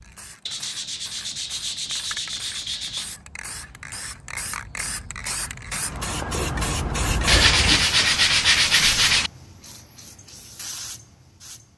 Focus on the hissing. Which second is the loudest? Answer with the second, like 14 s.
7 s.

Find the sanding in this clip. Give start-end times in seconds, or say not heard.
0.5-3.1, 7.2-9.3.